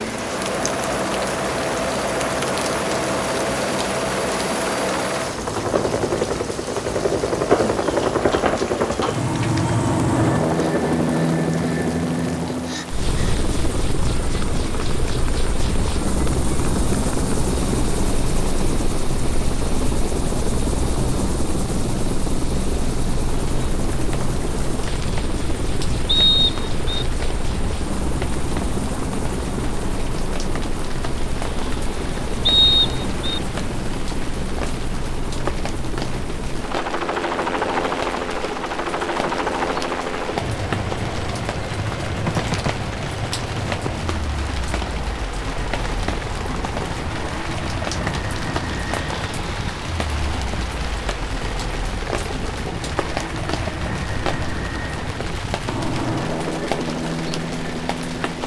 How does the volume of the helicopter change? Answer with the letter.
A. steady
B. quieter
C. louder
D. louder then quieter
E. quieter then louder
B.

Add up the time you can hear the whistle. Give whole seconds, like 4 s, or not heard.
2 s.